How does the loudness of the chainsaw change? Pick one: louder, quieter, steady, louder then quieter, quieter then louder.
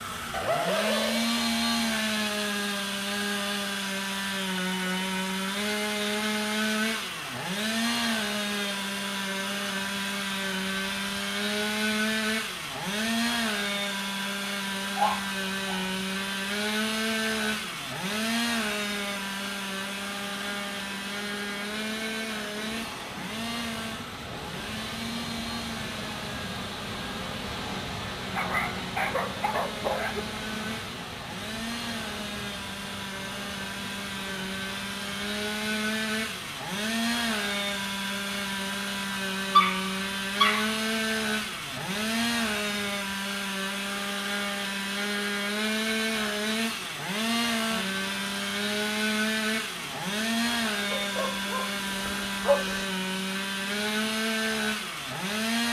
quieter then louder.